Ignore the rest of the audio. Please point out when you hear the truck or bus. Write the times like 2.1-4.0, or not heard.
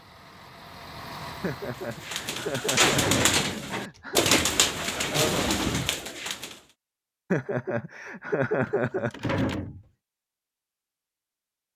0.0-2.3.